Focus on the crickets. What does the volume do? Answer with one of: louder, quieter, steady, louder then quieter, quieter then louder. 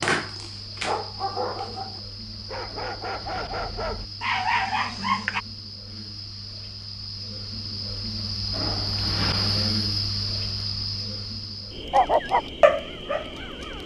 louder then quieter.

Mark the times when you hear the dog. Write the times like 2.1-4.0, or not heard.
0.0-5.4, 11.9-13.8.